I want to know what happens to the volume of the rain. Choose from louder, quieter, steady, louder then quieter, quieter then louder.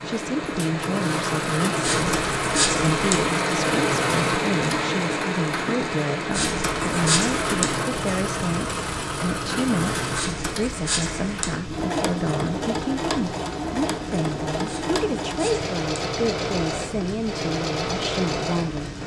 quieter.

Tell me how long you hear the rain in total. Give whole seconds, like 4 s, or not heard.
19 s.